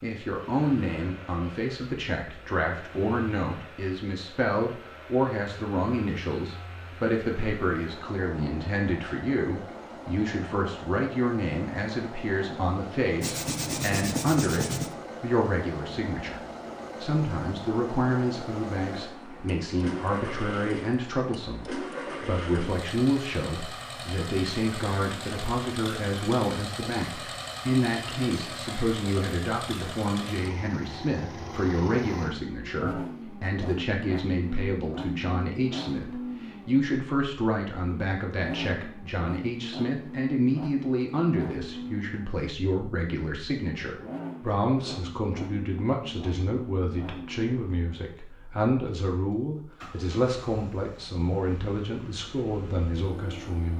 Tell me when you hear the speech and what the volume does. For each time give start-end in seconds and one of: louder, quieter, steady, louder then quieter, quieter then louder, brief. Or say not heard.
0.0-53.7 steady.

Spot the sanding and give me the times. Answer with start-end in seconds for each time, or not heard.
13.2-14.9.